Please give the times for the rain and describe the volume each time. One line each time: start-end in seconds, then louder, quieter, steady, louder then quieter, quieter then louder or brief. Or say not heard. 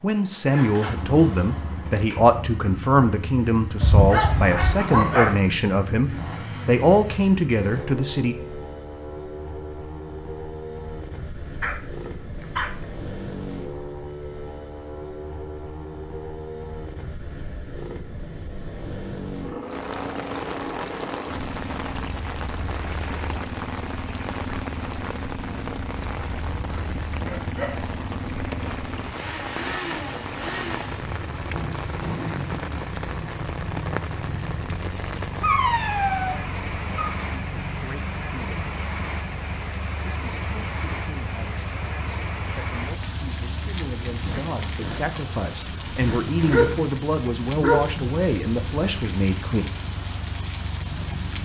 19.6-51.3 steady.